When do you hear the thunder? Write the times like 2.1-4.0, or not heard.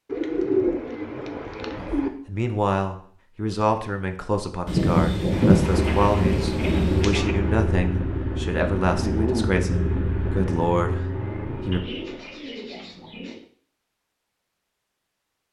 4.7-7.2.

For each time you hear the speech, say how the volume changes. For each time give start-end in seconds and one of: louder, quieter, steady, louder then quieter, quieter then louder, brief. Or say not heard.
1.8-11.8 steady.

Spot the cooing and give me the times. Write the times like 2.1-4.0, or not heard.
0.1-2.1, 5.3-7.3, 11.7-13.4.